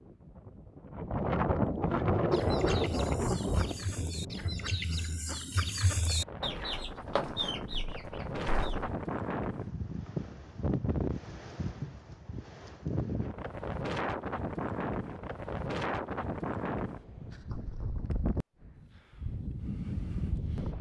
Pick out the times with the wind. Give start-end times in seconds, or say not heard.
0.0-20.7.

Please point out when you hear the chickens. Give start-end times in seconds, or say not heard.
1.8-8.9.